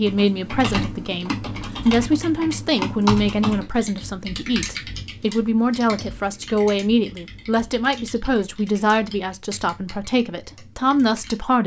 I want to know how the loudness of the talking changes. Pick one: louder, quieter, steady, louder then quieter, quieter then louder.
steady.